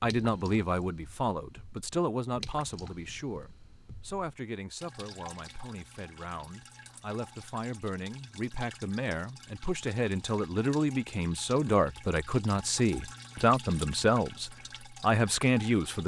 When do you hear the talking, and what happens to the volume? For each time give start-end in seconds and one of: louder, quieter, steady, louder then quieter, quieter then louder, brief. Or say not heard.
0.0-16.0 quieter then louder.